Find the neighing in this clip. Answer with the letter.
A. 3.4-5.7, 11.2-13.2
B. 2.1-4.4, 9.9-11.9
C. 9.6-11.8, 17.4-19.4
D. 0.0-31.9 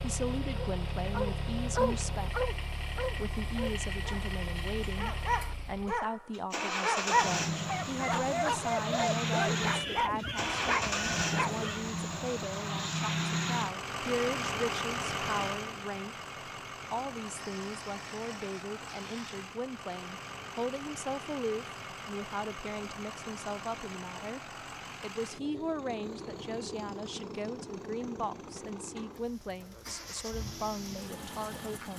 C.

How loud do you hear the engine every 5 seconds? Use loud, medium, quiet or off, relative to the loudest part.
medium, loud, loud, medium, medium, medium, medium.